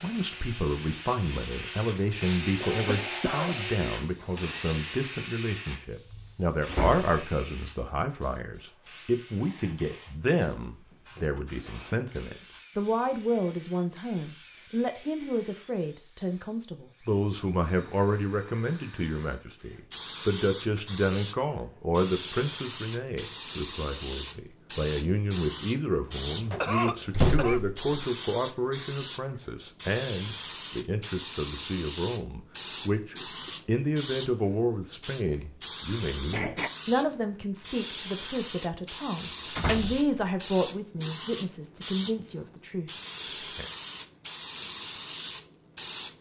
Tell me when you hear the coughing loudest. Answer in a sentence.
The loudest moment of the coughing is at 27 seconds.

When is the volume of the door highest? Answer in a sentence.
The volume of the door peaks at 27 seconds.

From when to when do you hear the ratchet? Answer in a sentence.
The ratchet can't be heard in this clip.